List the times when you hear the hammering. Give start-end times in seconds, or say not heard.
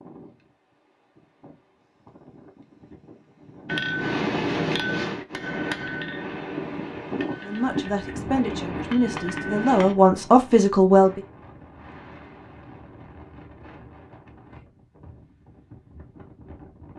3.6-9.9.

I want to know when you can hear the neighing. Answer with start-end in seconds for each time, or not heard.
not heard.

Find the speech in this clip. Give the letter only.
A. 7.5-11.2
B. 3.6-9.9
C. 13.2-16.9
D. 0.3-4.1
A.